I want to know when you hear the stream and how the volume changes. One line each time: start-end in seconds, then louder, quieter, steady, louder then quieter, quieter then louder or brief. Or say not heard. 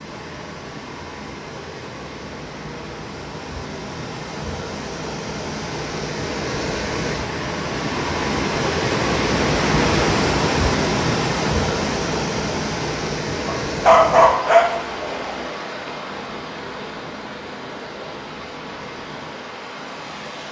0.0-20.4 louder then quieter.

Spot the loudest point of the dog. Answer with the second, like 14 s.
14 s.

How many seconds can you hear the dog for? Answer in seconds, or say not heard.
2 s.